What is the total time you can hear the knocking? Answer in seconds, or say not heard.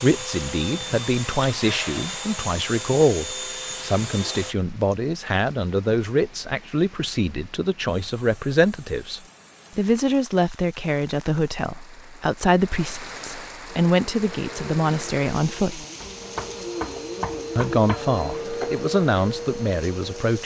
2 s.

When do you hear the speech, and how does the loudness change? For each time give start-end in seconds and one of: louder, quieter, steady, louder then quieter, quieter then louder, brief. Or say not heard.
0.0-15.8 steady
17.6-20.4 brief.